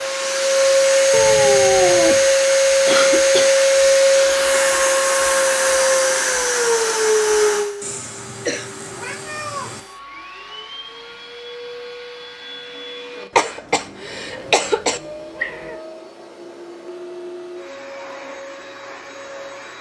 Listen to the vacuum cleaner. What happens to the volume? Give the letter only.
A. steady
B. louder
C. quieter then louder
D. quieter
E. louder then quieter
D.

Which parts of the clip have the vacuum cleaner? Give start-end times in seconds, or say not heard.
0.0-19.7.